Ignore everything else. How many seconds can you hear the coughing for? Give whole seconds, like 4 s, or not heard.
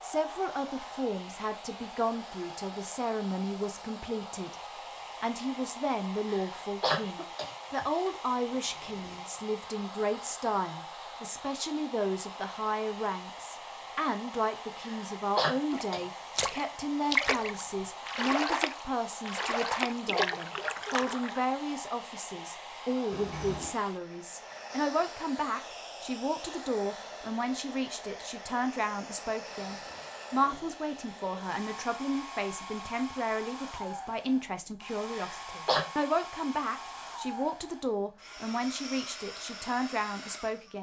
4 s.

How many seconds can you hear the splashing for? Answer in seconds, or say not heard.
6 s.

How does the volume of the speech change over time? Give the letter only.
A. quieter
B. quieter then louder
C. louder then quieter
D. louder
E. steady
E.